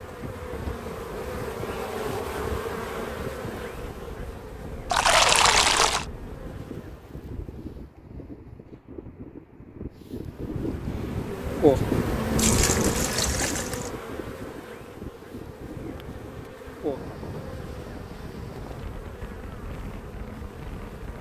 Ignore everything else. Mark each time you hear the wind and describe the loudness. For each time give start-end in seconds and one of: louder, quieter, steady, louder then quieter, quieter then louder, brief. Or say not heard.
0.0-21.1 louder then quieter.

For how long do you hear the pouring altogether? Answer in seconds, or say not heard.
3 s.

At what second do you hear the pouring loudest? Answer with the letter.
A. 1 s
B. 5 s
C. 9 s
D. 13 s
B.